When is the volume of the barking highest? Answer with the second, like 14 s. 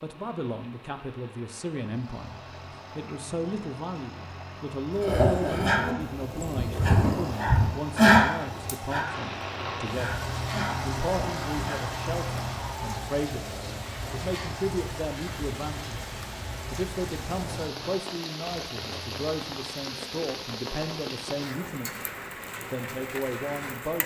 8 s.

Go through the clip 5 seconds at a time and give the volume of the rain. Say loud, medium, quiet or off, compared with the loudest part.
quiet, loud, loud, loud, loud.